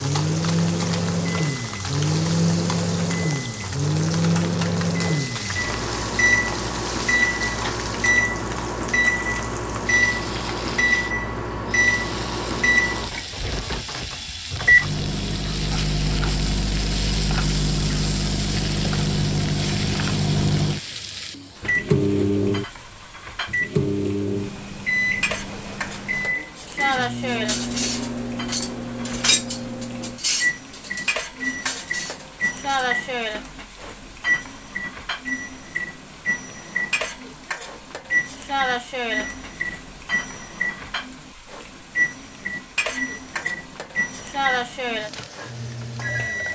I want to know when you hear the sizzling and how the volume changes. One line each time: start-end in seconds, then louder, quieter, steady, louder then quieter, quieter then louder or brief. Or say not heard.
0.0-46.4 steady.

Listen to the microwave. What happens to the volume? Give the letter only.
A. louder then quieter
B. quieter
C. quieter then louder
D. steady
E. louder
B.